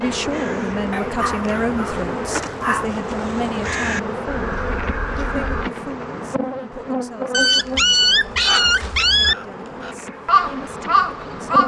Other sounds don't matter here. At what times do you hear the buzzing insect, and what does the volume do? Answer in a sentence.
You can hear the buzzing insect from 0.0 to 11.6 s, getting quieter.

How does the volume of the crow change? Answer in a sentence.
The volume of the crow goes up.